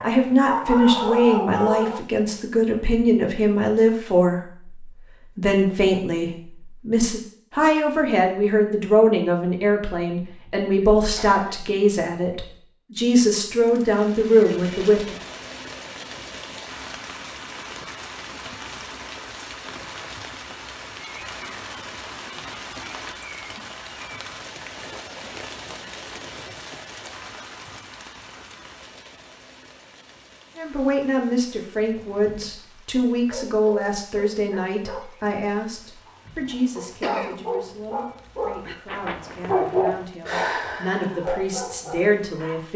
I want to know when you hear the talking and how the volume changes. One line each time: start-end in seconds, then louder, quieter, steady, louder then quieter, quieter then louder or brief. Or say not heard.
0.0-15.2 steady
30.6-42.7 quieter then louder.